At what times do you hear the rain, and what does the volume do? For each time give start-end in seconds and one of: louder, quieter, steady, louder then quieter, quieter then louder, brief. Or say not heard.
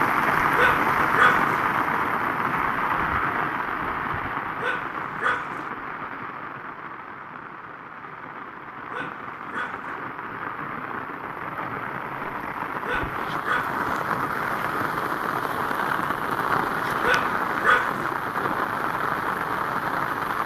0.0-20.4 quieter then louder.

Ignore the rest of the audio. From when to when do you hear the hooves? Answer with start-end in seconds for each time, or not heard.
not heard.